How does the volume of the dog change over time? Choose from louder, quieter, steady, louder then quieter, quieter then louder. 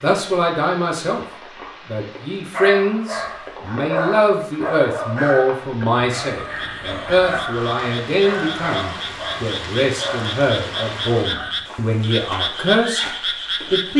quieter.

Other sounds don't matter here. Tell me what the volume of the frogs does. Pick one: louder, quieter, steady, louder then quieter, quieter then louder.
louder.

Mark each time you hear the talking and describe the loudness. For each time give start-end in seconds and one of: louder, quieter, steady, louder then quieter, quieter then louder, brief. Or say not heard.
0.0-1.2 brief
1.9-13.9 steady.